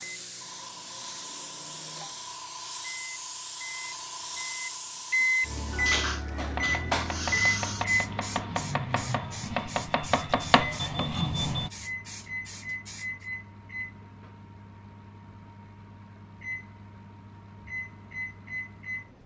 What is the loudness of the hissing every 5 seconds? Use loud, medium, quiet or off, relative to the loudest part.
loud, loud, medium, off.